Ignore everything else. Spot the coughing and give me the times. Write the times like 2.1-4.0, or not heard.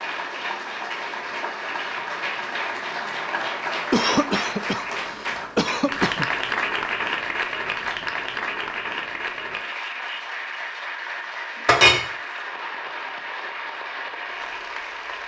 3.9-6.2.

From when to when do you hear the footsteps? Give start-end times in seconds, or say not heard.
not heard.